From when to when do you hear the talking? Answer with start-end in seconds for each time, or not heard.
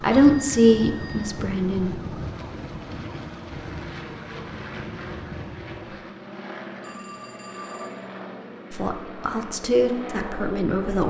0.0-2.0, 8.7-11.0.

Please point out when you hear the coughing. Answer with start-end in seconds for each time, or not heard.
not heard.